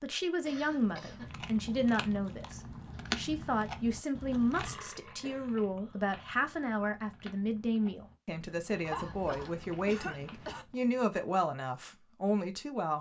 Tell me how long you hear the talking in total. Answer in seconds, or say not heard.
13 s.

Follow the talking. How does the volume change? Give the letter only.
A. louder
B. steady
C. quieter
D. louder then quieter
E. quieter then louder
B.